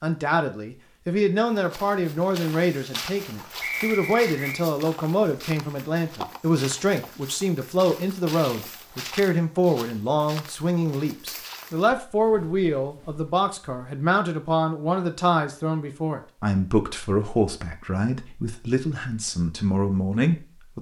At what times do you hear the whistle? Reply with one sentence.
The whistle can be heard from 3.6 to 4.6 s.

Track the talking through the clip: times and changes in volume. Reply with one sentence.
The talking can be heard from 0.0 to 20.7 s, at a steady volume.